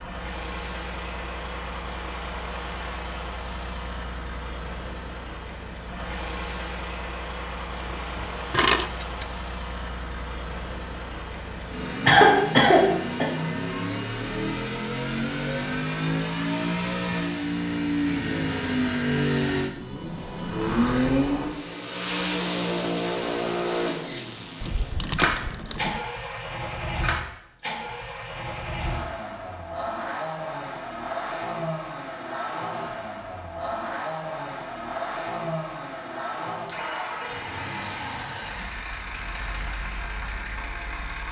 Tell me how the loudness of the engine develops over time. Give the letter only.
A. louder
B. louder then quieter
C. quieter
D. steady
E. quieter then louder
B.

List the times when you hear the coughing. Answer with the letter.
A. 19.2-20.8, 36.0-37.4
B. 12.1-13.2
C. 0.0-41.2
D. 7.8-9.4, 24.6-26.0
B.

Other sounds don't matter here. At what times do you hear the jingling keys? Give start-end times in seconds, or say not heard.
7.8-9.4, 24.6-26.0.